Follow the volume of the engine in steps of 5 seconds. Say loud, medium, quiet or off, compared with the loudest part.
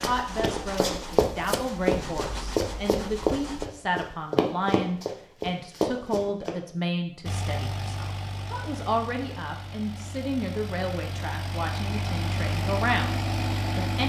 medium, medium, loud.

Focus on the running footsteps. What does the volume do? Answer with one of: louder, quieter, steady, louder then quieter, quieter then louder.
steady.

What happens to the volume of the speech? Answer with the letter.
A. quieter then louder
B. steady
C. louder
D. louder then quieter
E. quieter
B.